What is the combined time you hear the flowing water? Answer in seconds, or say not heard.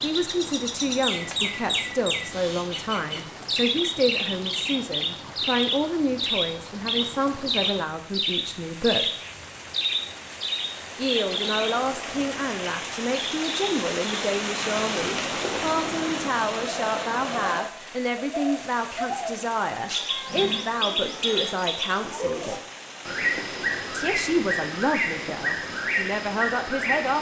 27 s.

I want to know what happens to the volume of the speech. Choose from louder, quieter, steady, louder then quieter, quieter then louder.
steady.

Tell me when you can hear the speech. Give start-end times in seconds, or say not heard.
0.0-9.1, 10.9-22.6, 23.9-27.1.